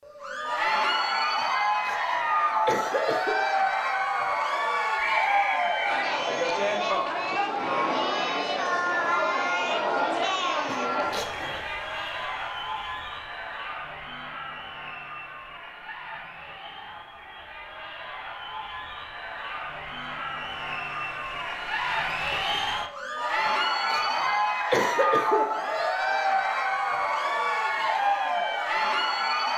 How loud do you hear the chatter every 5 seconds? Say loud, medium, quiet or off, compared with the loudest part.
loud, loud, medium, quiet, loud, loud.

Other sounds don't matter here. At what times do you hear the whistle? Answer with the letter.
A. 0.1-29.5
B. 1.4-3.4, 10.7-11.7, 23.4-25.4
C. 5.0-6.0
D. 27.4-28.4
C.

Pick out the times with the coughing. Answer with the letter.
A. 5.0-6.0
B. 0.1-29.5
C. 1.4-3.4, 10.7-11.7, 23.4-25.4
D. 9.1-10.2
C.